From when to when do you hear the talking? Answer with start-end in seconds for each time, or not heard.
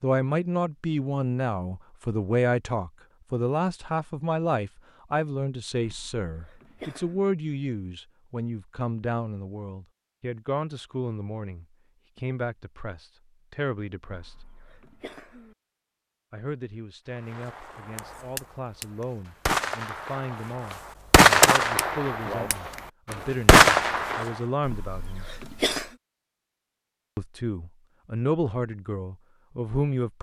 0.0-14.3, 16.3-25.2, 27.1-30.1.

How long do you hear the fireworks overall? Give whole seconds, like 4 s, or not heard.
7 s.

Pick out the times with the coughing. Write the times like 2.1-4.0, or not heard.
5.8-7.2, 14.1-15.6, 24.6-25.9.